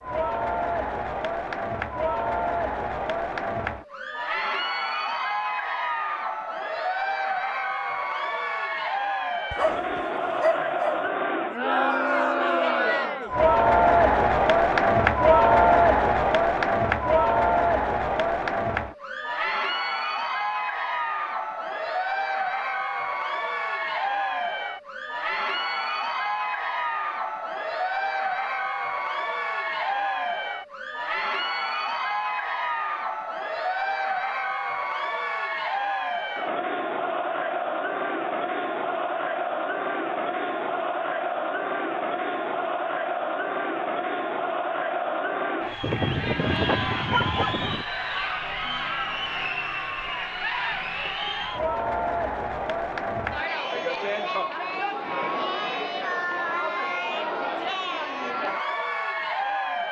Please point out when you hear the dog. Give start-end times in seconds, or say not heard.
9.5-11.1, 45.8-47.9.